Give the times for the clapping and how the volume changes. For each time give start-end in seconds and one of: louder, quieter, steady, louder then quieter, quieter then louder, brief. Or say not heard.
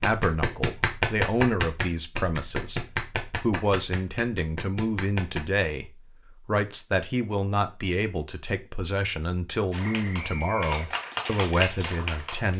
0.0-5.5 quieter
9.7-12.5 brief.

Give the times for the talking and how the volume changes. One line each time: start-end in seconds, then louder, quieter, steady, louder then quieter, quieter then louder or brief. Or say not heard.
0.0-12.5 steady.